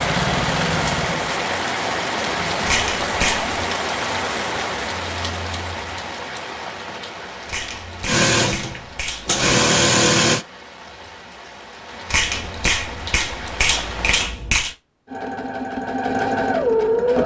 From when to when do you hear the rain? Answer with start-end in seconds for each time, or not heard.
0.0-14.3.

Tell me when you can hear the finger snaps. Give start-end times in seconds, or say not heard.
2.6-3.5, 7.5-9.4, 12.1-14.8.